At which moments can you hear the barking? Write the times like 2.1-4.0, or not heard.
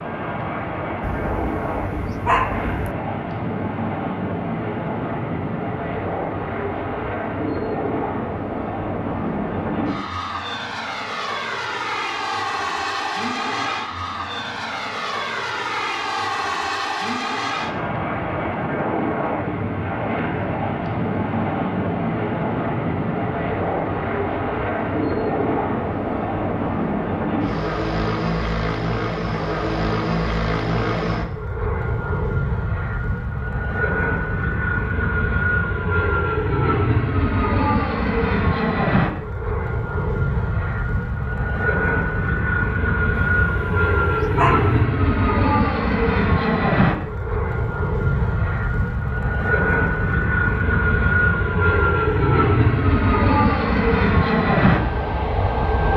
1.0-3.0, 43.1-44.9.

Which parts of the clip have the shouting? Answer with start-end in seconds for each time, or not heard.
not heard.